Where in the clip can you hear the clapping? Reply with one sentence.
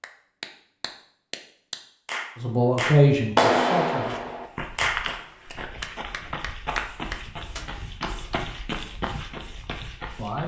The clapping can be heard from 0.0 to 8.4 s.